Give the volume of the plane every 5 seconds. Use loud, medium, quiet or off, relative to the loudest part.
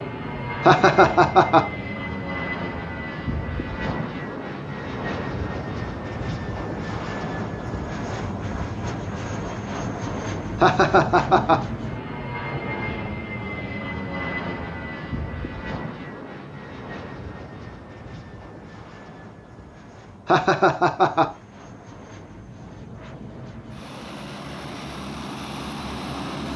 loud, loud, loud, medium, medium, loud.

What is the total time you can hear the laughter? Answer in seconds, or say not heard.
3 s.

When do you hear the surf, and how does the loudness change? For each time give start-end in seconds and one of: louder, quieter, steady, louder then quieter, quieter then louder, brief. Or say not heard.
not heard.